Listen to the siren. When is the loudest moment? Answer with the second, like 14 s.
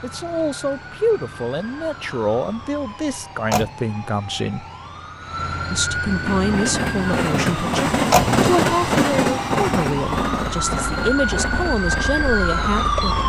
13 s.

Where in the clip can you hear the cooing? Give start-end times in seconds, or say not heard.
not heard.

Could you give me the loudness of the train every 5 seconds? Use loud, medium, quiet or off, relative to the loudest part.
off, loud, medium.